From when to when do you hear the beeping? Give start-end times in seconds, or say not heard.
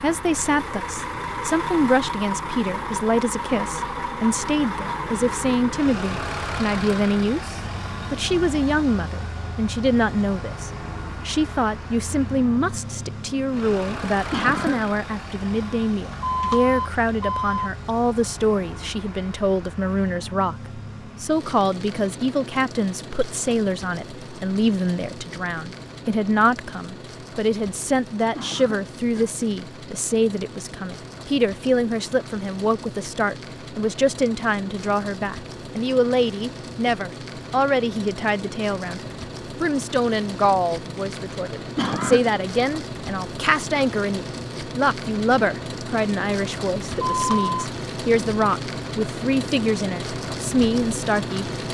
16.1-17.7, 46.9-47.5.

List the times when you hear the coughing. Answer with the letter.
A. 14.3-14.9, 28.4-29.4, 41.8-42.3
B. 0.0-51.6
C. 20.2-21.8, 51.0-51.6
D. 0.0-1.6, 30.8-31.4
A.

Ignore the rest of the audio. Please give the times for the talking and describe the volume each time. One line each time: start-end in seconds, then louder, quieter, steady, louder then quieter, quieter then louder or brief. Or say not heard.
0.0-51.6 steady.